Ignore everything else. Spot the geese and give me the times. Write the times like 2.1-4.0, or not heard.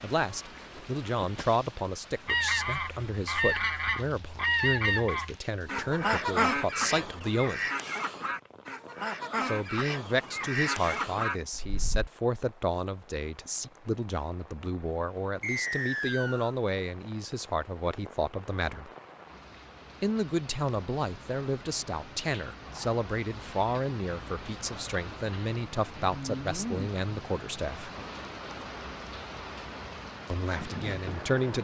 2.2-12.1.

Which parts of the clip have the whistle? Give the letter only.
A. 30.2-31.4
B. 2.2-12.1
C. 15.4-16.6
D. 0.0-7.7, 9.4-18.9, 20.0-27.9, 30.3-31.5
C.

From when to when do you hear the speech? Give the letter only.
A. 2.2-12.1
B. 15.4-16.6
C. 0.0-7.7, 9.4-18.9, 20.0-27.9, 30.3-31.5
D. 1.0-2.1
C.